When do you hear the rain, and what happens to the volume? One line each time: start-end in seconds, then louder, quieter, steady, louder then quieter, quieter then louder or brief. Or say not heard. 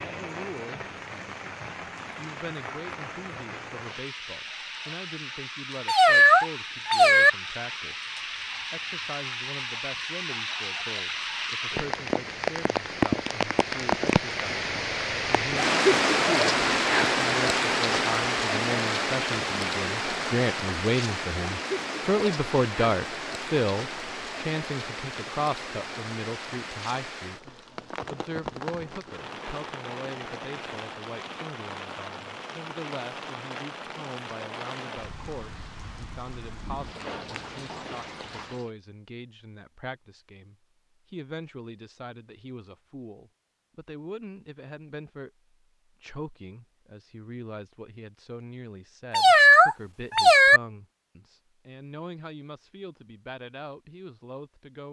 0.0-38.7 louder then quieter.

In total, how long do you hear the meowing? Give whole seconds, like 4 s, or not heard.
3 s.